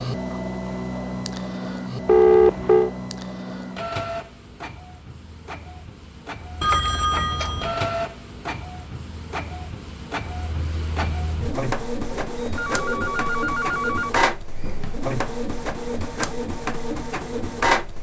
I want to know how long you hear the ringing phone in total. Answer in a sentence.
You can hear the ringing phone for 4 seconds altogether.